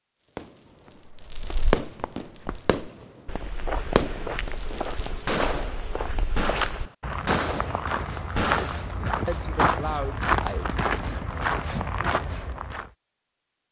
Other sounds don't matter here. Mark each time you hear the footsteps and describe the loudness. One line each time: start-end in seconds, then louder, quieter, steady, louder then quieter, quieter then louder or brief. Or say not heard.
1.1-12.9 louder.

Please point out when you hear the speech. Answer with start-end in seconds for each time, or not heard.
9.2-10.7.